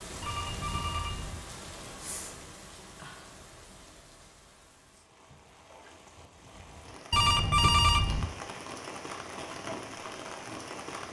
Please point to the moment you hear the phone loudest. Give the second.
8 s.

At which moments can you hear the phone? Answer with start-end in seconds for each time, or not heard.
0.2-1.4, 7.1-8.3.